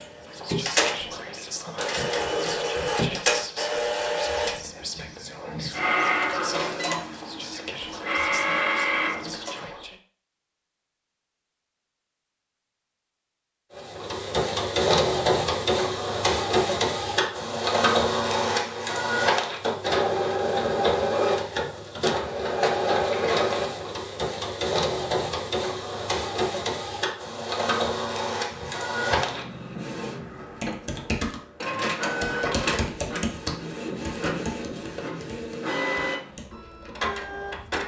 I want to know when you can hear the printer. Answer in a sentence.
The printer can be heard from 0.0 to 9.6 s and from 13.8 to 37.8 s.